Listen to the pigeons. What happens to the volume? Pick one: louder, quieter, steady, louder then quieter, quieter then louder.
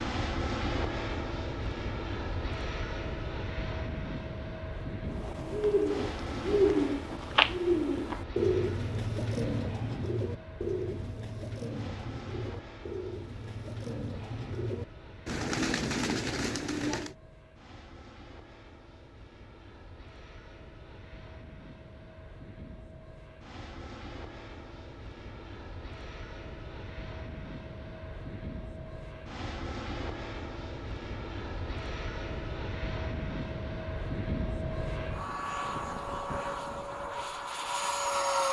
quieter then louder.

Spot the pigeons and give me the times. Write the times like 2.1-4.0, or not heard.
5.0-17.1.